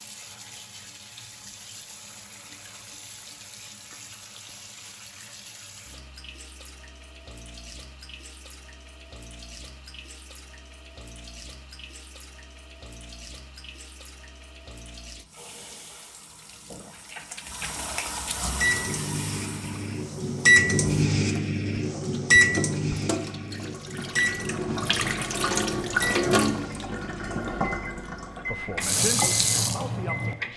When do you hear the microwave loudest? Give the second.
21 s.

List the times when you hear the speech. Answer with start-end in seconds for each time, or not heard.
28.4-30.5.